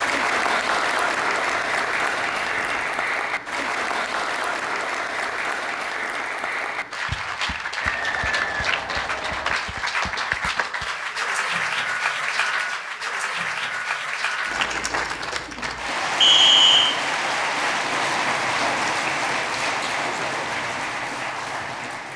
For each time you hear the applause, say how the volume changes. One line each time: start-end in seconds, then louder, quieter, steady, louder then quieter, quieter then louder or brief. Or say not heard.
0.0-22.1 steady.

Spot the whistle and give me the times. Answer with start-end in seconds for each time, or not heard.
1.6-3.0, 7.8-9.6, 16.2-16.9.